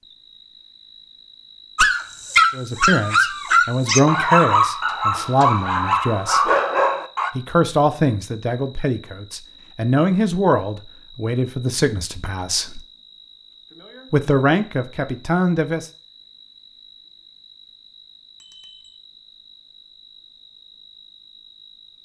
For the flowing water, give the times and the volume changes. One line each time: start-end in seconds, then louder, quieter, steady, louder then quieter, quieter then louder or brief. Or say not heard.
not heard.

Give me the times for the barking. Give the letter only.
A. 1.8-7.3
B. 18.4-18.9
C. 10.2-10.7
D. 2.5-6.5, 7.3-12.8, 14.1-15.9
A.